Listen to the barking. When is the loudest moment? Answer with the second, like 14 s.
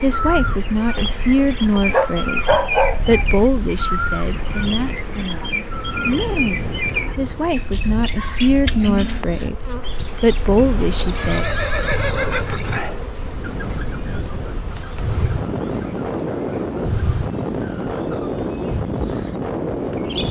3 s.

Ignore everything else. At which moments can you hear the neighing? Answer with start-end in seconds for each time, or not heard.
11.2-12.8.